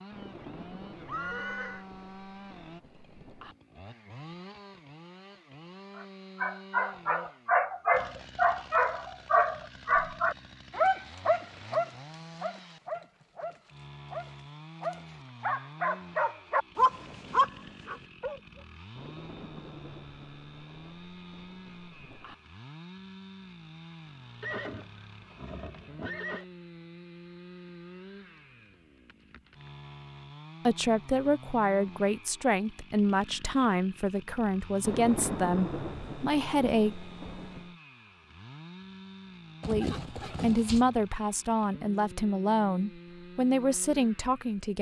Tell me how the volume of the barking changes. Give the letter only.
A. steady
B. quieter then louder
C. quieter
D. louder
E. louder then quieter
B.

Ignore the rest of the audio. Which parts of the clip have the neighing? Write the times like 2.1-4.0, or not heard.
1.1-1.9, 24.4-26.4, 39.6-40.9.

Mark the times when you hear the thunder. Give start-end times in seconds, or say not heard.
0.1-3.5, 18.9-22.4, 34.8-37.8.